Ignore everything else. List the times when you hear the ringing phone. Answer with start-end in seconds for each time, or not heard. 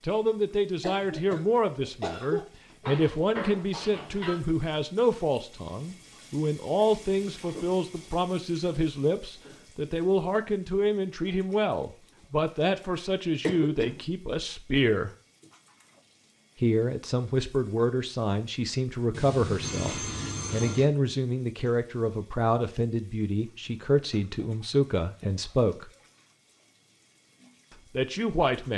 2.8-4.4, 19.1-20.9.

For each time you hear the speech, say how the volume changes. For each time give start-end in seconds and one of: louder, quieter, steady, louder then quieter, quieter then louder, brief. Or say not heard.
0.0-15.1 steady
16.6-25.9 steady
27.9-28.7 brief.